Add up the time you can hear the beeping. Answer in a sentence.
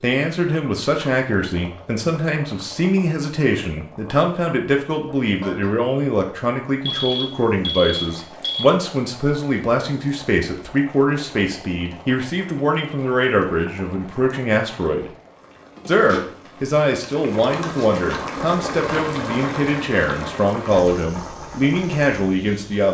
The beeping can be heard for 2 seconds in total.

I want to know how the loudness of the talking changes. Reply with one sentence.
The volume of the talking stays about the same.